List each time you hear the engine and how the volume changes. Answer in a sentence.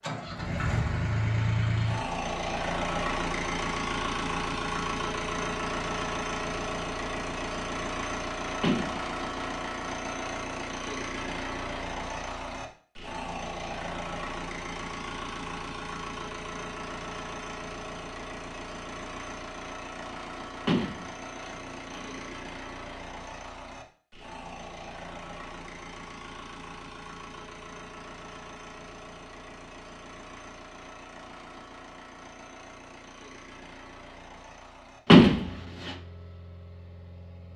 You can hear the engine from 0.0 to 37.5 s, getting quieter.